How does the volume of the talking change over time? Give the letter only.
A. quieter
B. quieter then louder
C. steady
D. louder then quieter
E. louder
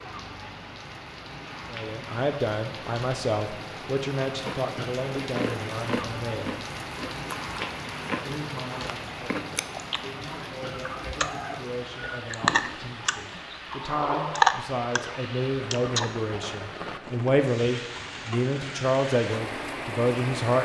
B.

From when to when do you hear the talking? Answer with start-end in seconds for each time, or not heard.
1.7-6.6, 8.2-20.5.